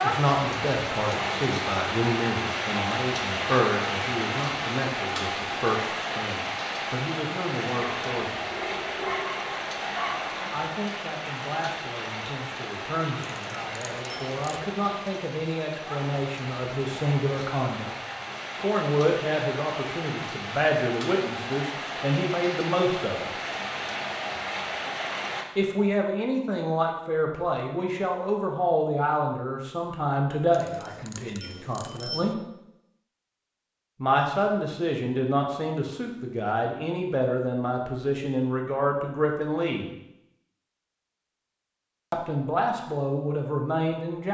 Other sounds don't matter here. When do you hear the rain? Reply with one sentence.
The rain can be heard from 0.0 to 25.4 s.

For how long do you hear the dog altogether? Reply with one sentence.
You can hear the dog for 3 seconds altogether.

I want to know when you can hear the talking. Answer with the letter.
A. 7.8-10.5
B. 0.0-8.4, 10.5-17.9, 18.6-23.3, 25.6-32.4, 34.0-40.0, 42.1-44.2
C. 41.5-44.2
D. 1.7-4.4
B.